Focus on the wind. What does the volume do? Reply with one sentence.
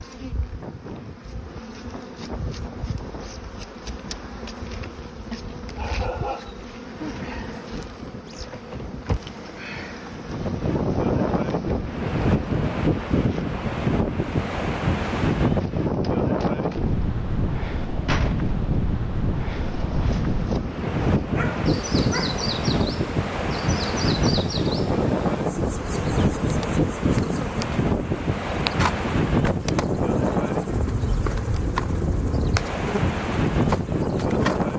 The loudness of the wind goes up.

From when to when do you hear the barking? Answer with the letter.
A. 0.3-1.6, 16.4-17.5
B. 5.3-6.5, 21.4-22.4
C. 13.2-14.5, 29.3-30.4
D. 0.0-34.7
B.